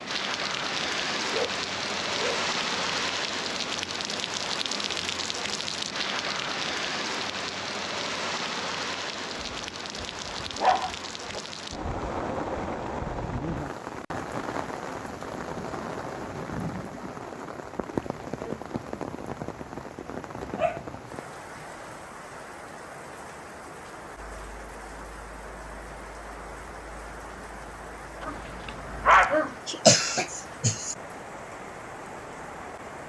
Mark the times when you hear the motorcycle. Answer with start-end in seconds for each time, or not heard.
not heard.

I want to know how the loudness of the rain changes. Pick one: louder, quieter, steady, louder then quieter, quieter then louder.
quieter.